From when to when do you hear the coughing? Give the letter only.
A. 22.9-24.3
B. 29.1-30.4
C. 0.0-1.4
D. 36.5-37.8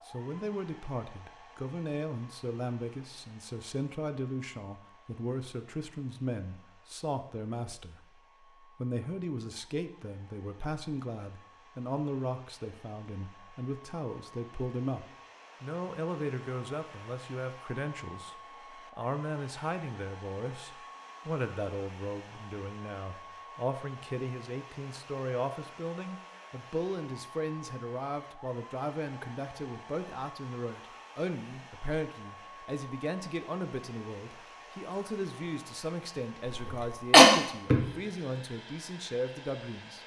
D.